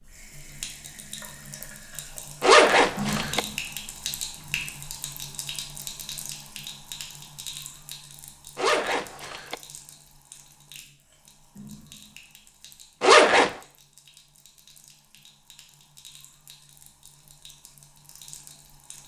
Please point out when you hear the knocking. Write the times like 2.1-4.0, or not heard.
not heard.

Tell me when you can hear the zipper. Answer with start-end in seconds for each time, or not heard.
2.4-3.4, 8.6-9.6, 13.0-13.6.